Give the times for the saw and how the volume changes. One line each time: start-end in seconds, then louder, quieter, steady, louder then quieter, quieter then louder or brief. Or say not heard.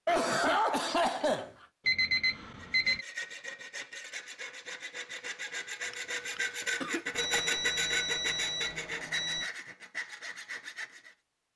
2.5-11.2 louder then quieter.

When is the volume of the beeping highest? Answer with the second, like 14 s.
2 s.